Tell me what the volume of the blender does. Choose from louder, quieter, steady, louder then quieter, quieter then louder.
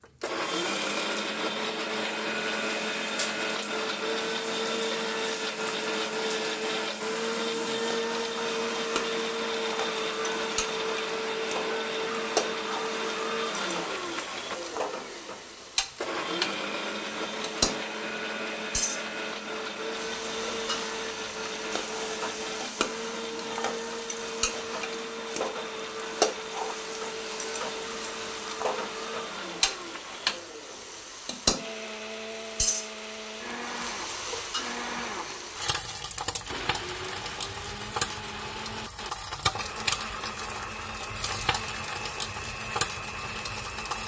quieter.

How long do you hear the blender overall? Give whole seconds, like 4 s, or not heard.
44 s.